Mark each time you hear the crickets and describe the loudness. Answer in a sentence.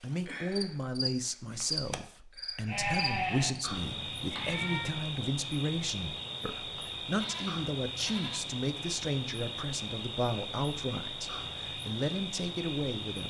You can hear the crickets from 0.0 to 13.2 s, at a steady volume.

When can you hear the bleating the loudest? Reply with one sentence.
The loudest moment of the bleating is at 3 seconds.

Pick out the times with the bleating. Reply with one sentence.
The bleating can be heard from 2.6 to 5.0 s and from 7.1 to 8.4 s.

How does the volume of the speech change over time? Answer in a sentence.
The volume of the speech stays about the same.